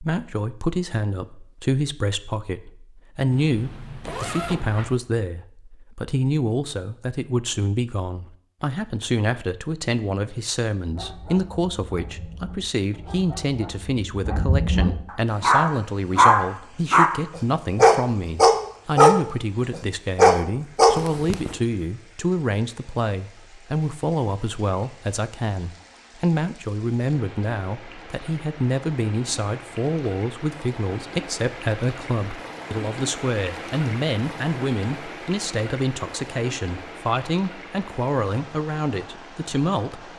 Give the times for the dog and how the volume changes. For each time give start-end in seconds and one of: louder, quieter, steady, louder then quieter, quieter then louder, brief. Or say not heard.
10.8-21.0 louder.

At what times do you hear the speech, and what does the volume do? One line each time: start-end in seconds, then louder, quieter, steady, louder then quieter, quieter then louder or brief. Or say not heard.
0.0-40.1 steady.